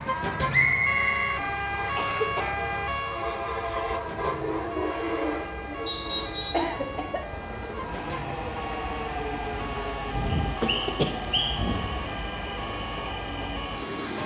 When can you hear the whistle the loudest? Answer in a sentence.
The volume of the whistle peaks at 1 second.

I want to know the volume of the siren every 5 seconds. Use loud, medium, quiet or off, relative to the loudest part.
loud, medium, medium.